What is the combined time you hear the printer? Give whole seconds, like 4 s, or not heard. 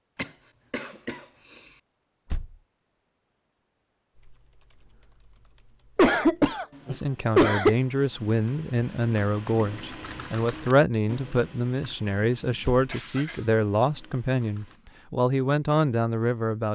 not heard.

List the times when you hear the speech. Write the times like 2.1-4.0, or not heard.
6.8-16.7.